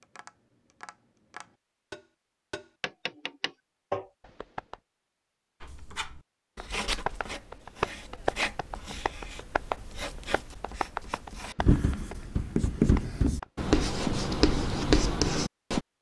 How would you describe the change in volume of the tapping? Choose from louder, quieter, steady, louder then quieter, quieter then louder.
louder then quieter.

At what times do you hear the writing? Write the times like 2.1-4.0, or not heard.
5.6-15.8.